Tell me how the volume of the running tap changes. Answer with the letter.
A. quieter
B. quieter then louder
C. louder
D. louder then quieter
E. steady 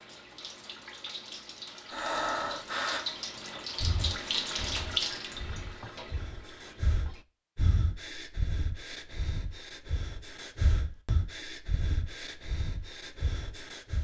D.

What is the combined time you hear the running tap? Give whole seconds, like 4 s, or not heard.
7 s.